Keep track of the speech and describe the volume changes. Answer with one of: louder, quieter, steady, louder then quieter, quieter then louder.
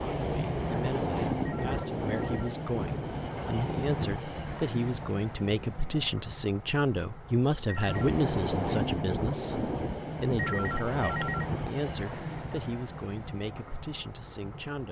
louder then quieter.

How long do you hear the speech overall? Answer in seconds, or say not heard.
15 s.